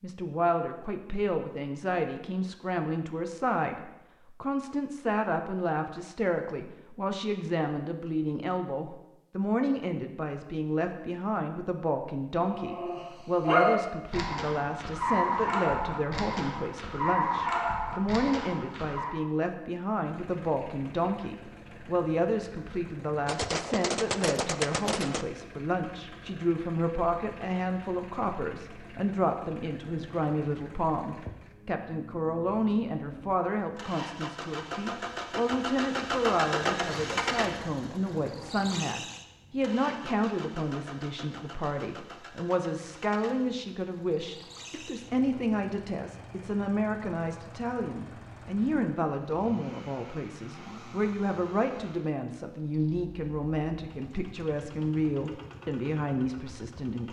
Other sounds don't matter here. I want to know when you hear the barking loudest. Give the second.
14 s.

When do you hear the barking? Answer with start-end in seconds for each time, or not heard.
12.4-19.1.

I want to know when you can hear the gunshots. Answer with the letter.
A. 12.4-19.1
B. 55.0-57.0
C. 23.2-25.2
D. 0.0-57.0
C.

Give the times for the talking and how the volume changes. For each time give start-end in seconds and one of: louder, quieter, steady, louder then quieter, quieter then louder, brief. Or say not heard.
0.0-57.0 steady.